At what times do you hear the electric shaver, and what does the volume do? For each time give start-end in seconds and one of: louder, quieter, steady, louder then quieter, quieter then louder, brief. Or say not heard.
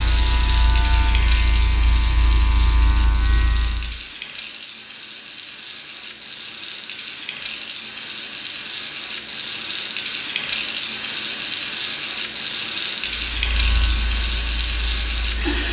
0.0-4.0 steady
13.2-15.6 brief.